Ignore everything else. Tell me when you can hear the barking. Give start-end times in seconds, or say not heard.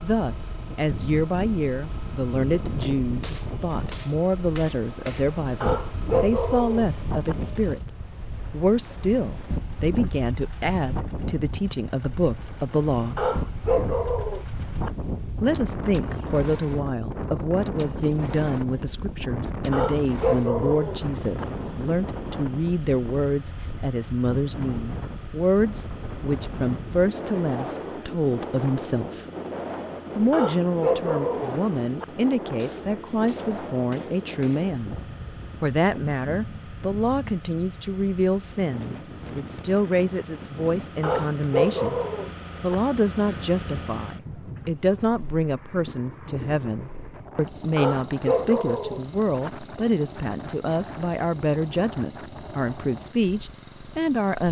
5.6-7.3, 13.2-14.9, 19.7-21.4, 30.3-32.0, 41.0-42.8, 47.8-49.5.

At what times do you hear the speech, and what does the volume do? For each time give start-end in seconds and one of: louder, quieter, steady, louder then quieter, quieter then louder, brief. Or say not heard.
0.0-13.2 steady
15.4-29.2 steady
30.1-35.0 steady
35.6-42.0 steady
42.6-54.4 steady.